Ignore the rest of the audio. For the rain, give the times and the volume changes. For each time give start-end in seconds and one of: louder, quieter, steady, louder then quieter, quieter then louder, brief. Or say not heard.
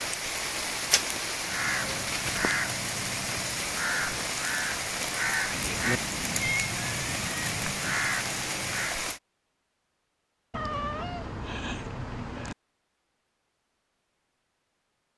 0.0-9.2 steady.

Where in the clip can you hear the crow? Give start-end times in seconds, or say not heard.
1.4-9.0.